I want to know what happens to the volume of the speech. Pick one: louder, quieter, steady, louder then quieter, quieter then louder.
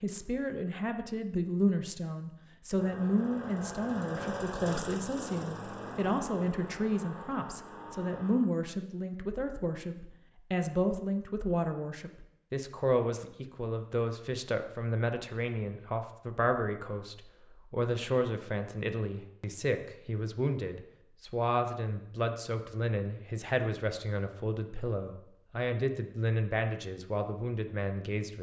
steady.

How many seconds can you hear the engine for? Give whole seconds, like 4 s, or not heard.
6 s.